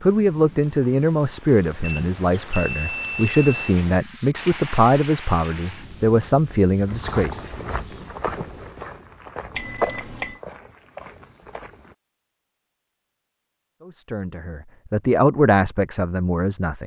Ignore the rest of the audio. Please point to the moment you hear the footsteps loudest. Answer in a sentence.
The loudest moment of the footsteps is at 10 seconds.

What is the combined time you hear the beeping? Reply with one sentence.
The beeping can be heard for 3 seconds in total.